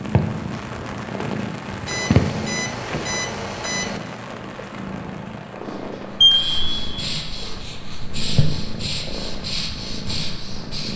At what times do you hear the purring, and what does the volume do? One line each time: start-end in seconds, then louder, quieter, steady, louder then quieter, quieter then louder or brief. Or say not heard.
0.0-10.9 quieter.